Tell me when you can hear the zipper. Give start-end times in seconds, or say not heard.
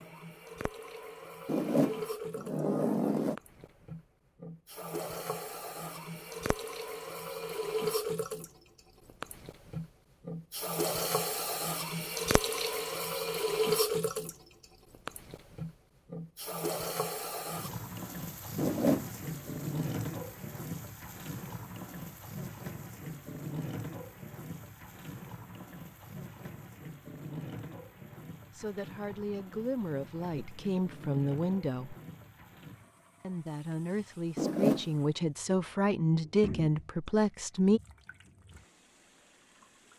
1.4-3.4, 18.6-19.5, 34.4-34.9.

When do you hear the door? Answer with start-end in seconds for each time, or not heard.
not heard.